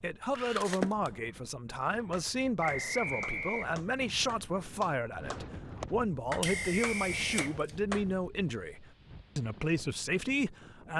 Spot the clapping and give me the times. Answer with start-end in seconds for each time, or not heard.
2.1-8.1.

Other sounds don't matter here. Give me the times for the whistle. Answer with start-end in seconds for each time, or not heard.
2.6-3.8, 6.4-7.7.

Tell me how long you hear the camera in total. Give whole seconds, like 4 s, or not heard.
2 s.